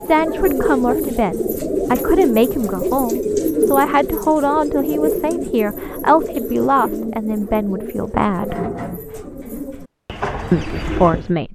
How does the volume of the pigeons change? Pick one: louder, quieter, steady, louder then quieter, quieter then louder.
quieter.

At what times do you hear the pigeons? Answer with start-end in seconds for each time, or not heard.
0.0-11.3.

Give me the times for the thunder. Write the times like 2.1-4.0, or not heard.
not heard.